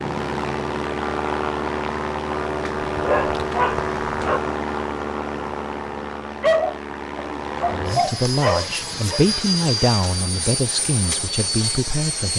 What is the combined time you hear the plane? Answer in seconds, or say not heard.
12 s.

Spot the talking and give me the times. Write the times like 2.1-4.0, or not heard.
7.7-12.3.